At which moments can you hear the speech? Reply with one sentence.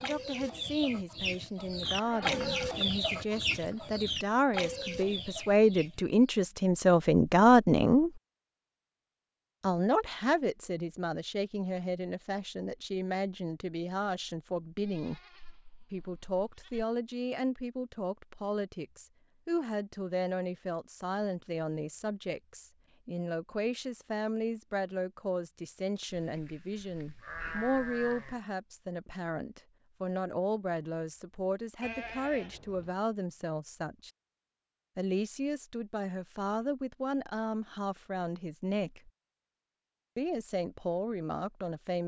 The speech can be heard from 0.0 to 8.1 s, from 9.6 to 15.2 s, from 15.9 to 34.1 s, from 35.0 to 39.1 s and from 40.1 to 42.0 s.